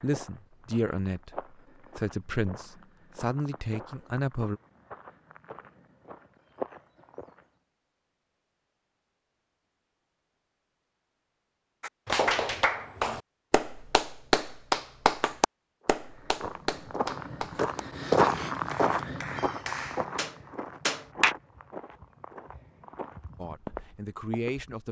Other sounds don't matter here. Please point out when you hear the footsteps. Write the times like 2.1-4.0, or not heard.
0.0-7.5, 15.8-24.8.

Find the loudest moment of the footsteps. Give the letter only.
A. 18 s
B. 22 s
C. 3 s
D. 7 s
A.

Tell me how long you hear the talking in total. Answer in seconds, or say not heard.
6 s.